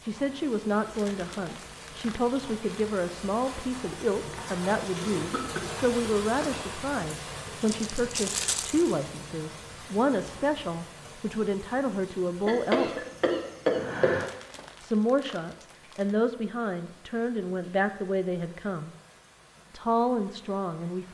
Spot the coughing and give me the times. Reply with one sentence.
The coughing can be heard from 5.0 to 6.7 s and from 12.4 to 14.3 s.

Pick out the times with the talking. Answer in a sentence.
The talking can be heard from 0.1 to 13.1 s, from 14.8 to 18.9 s and from 19.7 to 21.0 s.